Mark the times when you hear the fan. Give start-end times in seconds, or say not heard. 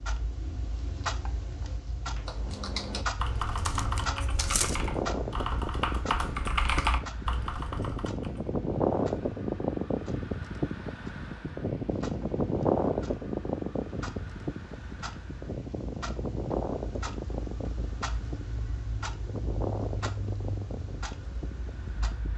4.5-22.3.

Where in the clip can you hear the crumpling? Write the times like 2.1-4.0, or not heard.
3.5-4.8.